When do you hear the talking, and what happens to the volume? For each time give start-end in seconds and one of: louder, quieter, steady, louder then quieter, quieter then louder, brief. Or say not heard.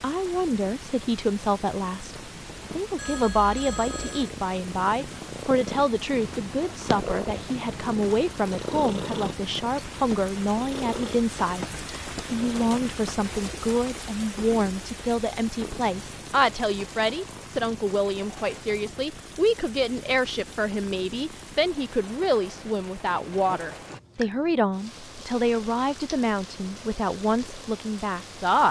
0.0-28.6 steady.